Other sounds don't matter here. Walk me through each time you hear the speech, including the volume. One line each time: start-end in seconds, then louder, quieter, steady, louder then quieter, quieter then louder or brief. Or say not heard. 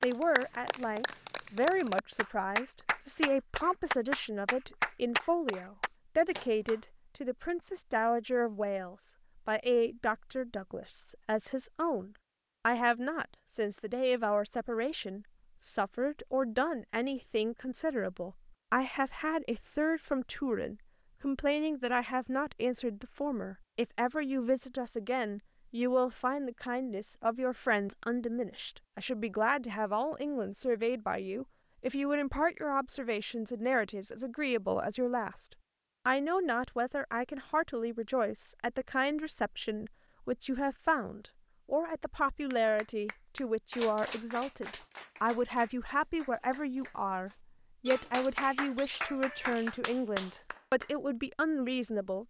0.0-52.2 steady.